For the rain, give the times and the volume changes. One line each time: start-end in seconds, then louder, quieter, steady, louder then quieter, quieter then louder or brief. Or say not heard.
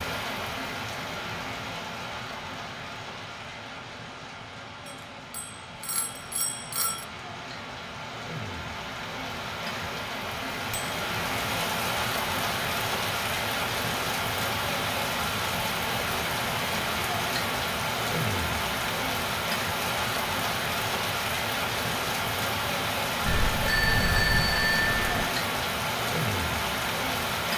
0.0-27.5 louder.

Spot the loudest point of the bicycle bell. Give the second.
24 s.